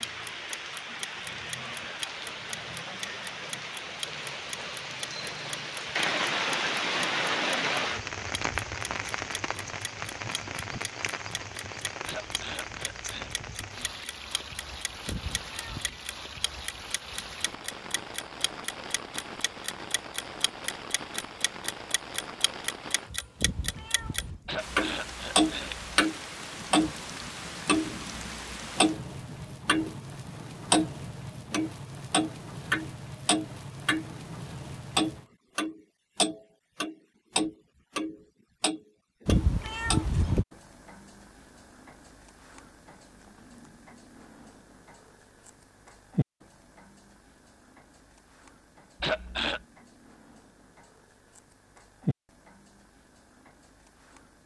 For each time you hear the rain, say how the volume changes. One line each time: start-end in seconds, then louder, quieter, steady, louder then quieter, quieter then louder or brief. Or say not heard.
0.0-35.3 quieter.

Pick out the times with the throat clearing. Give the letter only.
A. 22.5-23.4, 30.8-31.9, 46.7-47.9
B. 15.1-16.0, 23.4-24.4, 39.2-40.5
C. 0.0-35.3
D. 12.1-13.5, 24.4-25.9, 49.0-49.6
D.